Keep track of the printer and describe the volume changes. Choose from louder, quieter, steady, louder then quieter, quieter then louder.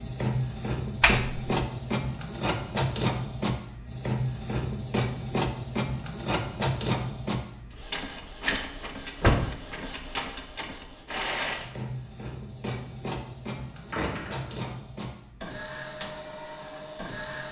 quieter.